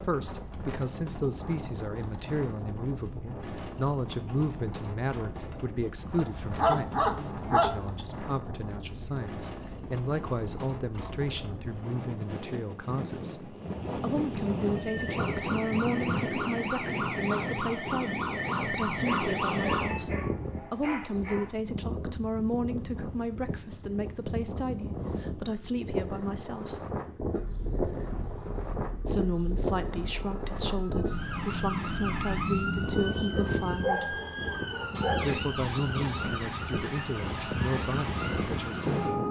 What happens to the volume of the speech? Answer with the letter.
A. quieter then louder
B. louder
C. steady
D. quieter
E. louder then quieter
C.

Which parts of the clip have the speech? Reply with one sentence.
The speech can be heard from 0.0 to 26.8 s, from 29.0 to 34.1 s and from 35.2 to 39.2 s.